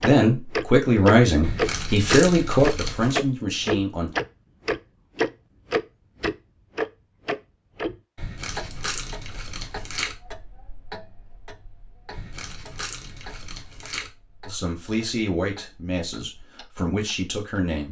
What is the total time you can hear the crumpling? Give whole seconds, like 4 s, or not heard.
6 s.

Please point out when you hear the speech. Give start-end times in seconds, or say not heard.
0.0-4.1, 14.4-17.8.